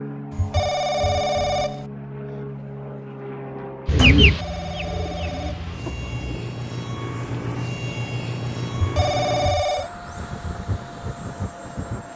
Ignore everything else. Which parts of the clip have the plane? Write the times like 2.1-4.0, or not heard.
0.0-12.1.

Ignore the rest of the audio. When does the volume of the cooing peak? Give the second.
4 s.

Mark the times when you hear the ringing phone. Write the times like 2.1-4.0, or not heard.
0.3-1.9, 4.2-5.7, 8.8-9.9.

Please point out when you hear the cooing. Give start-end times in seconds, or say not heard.
3.9-6.5.